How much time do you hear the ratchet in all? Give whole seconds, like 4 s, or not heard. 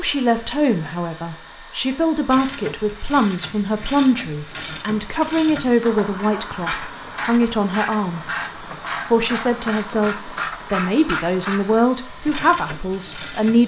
11 s.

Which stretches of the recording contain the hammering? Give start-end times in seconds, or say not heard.
not heard.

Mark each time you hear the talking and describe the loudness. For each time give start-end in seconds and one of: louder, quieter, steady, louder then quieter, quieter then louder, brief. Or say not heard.
0.0-8.2 steady
9.1-13.6 steady.